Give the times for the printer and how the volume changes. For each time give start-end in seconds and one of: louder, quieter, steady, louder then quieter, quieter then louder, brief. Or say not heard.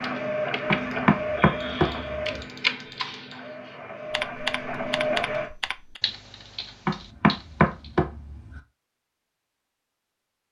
0.0-5.5 quieter then louder.